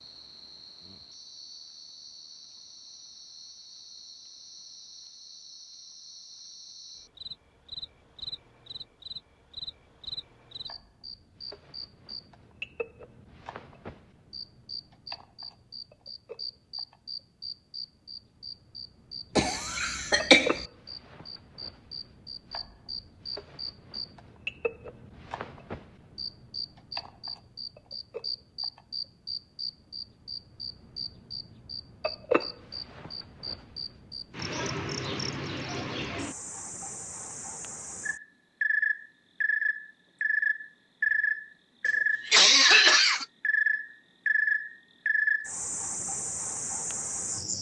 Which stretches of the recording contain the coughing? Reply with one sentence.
You can hear the coughing from 19.4 to 20.6 s and from 41.9 to 43.2 s.